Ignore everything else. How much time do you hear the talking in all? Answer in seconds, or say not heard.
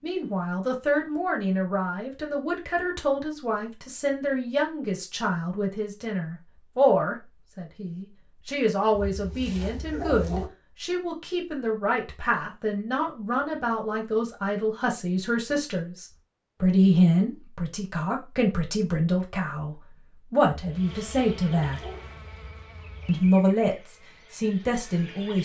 24 s.